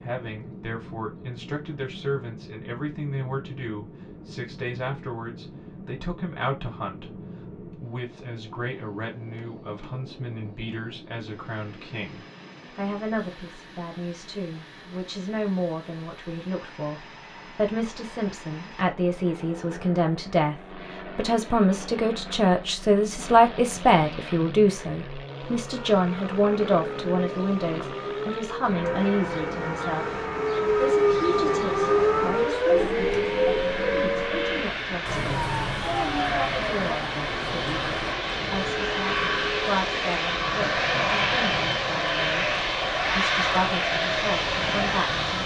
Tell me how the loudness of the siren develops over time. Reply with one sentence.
The loudness of the siren goes up, then down.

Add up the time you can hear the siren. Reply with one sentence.
The siren can be heard for 20 seconds in total.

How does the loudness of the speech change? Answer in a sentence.
The loudness of the speech goes up, then down.